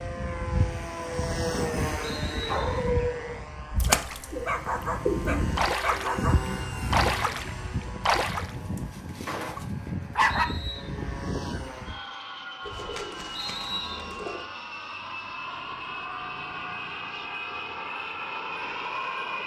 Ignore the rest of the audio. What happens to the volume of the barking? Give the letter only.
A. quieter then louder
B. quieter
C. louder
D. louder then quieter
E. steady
A.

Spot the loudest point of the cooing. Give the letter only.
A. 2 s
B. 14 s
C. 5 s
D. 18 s
C.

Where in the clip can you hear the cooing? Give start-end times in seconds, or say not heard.
4.3-5.5, 12.6-14.4.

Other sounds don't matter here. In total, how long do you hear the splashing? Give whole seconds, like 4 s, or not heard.
4 s.